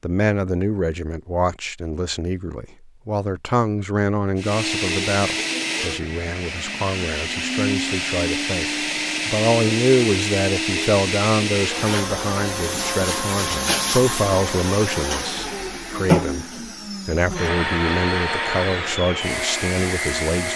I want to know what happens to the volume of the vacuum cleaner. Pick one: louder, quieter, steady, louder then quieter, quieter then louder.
steady.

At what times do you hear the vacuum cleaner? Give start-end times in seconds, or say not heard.
4.3-20.5.